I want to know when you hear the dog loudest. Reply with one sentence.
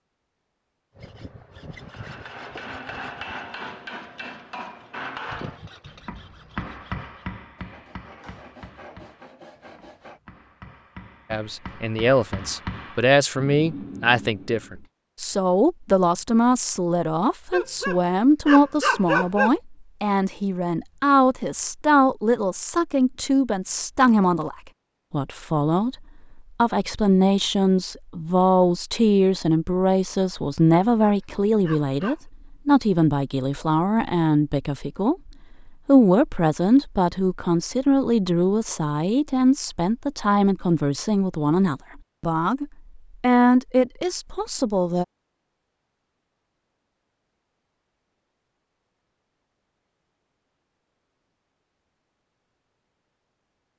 The loudest moment of the dog is at 19 seconds.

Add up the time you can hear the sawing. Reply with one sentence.
You can hear the sawing for 9 seconds altogether.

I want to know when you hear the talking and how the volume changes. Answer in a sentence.
The talking can be heard from 11.3 to 45.0 s, at a steady volume.